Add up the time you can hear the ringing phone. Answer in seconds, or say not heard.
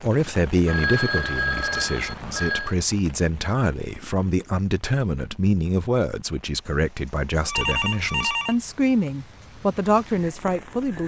3 s.